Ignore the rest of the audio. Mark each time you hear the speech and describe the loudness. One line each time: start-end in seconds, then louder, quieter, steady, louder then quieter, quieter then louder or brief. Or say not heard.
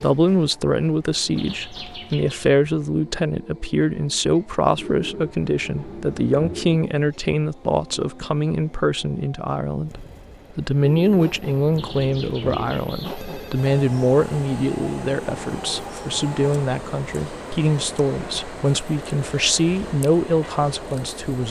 0.0-21.4 steady.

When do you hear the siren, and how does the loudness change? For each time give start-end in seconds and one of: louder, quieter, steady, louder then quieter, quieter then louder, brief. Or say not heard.
not heard.